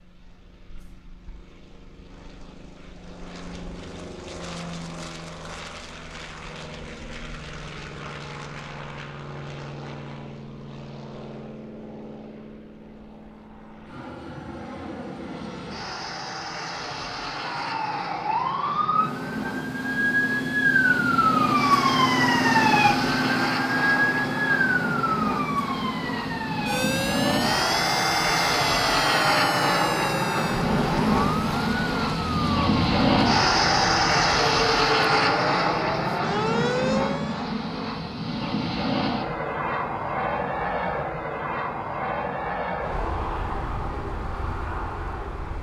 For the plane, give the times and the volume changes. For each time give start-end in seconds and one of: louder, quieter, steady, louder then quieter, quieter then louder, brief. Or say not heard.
0.0-45.5 louder then quieter.